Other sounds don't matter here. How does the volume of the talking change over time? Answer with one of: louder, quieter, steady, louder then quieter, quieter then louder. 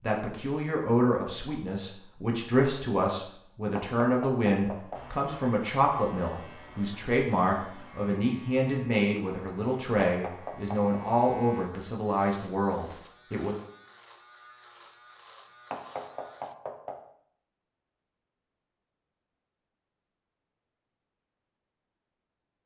steady.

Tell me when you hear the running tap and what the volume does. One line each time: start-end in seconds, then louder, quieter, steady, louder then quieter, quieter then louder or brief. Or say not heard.
not heard.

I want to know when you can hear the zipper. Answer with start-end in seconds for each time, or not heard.
not heard.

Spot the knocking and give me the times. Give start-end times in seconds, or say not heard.
3.8-5.0, 10.1-10.9, 15.7-17.0.